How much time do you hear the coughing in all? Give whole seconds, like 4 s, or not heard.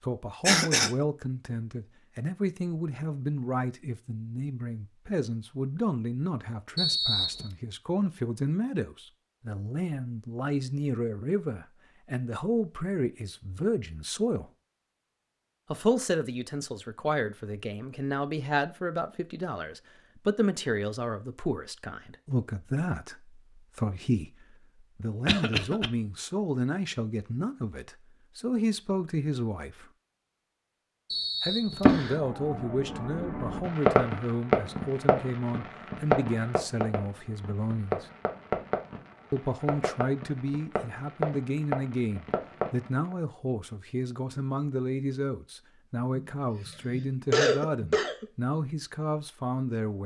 3 s.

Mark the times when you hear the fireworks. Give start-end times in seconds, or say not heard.
31.8-43.1.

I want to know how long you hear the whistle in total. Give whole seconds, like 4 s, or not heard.
2 s.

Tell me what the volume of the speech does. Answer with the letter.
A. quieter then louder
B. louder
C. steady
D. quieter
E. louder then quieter
C.